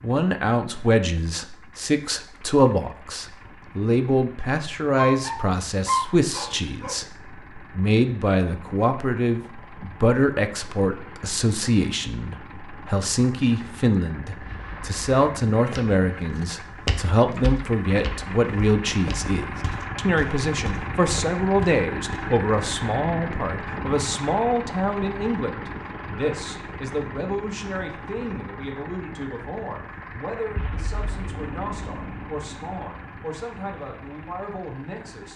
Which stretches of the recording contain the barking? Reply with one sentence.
You can hear the barking from 5.0 to 7.0 s.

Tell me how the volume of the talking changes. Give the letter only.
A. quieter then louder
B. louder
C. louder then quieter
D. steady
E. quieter
E.